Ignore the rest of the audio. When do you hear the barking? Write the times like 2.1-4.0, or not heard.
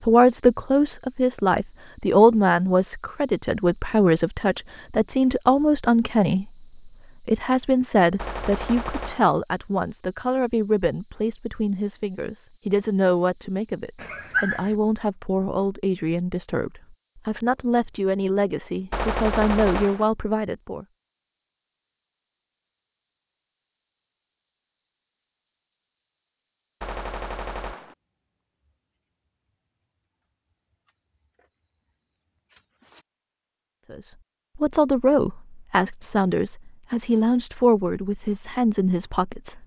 13.9-14.8.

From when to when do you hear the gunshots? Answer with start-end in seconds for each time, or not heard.
8.2-9.3, 18.9-20.1, 26.8-27.9.